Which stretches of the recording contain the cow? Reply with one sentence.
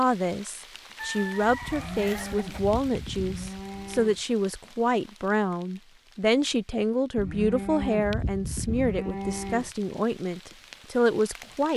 You can hear the cow from 1.6 to 4.2 s and from 7.2 to 9.7 s.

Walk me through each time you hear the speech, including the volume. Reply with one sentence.
The speech can be heard from 0.0 to 11.7 s, at a steady volume.